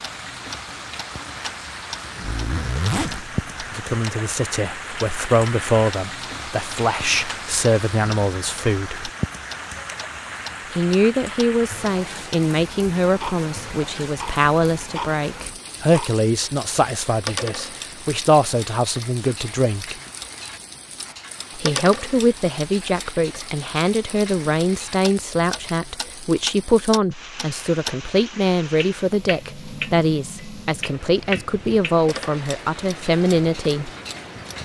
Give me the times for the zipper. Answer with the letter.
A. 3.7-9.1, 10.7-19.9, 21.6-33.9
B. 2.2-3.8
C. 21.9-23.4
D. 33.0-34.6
B.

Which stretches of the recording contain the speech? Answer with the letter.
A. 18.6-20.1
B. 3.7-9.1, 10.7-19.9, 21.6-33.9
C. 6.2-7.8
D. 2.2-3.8
B.